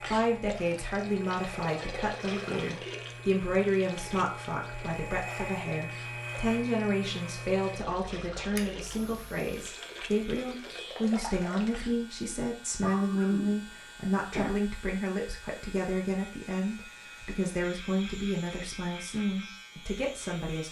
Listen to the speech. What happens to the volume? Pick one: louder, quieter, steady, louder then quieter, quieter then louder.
steady.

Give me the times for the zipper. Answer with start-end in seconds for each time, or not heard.
not heard.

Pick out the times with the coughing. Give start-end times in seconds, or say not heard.
12.8-14.5.